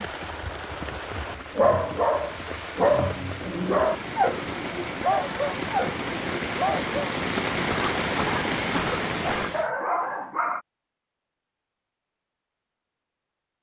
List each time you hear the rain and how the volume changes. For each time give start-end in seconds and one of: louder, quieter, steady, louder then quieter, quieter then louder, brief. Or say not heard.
0.0-9.7 louder.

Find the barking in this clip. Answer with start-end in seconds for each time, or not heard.
1.6-10.6.